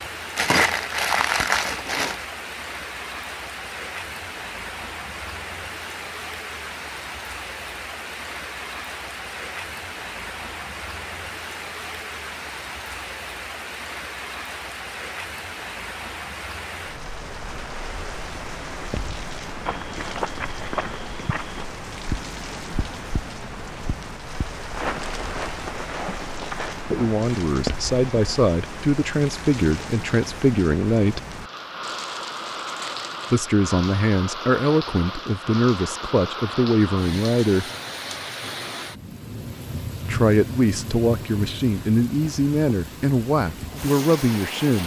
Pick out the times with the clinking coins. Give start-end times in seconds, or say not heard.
not heard.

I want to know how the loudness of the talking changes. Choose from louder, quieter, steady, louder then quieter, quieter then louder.
steady.